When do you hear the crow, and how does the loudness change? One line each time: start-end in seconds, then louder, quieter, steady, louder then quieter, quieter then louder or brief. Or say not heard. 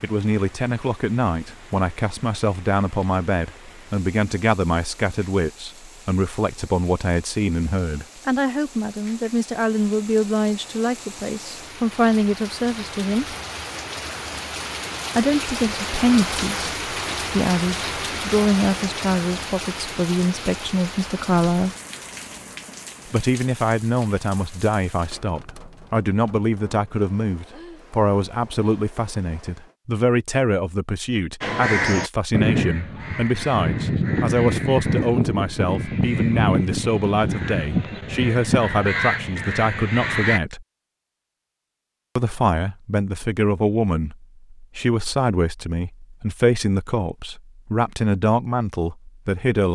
31.4-40.4 steady.